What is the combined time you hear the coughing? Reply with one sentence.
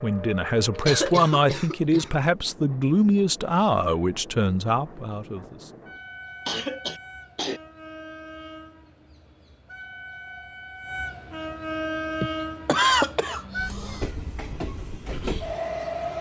The coughing can be heard for 4 seconds in total.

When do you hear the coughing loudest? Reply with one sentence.
The volume of the coughing peaks at 13 seconds.